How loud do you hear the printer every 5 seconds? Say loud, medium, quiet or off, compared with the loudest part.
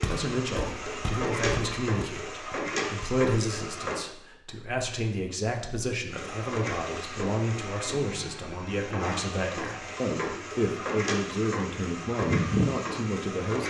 loud, medium, loud.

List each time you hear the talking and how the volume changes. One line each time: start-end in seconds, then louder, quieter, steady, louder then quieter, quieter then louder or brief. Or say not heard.
0.0-13.6 steady.